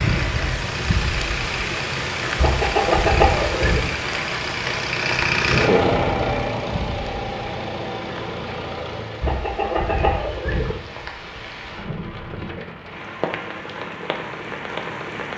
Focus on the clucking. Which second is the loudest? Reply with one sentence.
The loudest moment of the clucking is at 3 seconds.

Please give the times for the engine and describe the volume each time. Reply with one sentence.
The engine can be heard from 0.0 to 9.3 s, getting louder then quieter.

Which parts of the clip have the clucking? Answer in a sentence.
You can hear the clucking from 2.4 to 3.9 s and from 9.2 to 10.8 s.